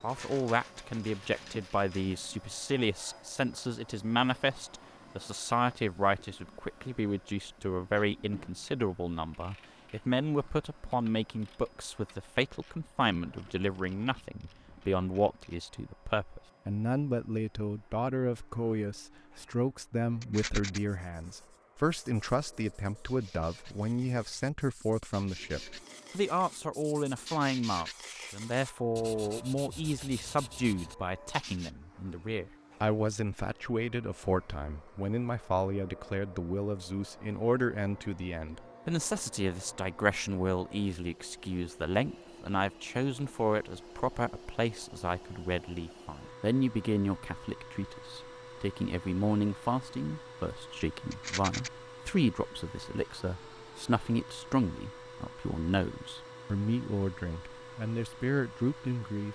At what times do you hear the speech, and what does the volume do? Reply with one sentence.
You can hear the speech from 0.0 to 59.3 s, at a steady volume.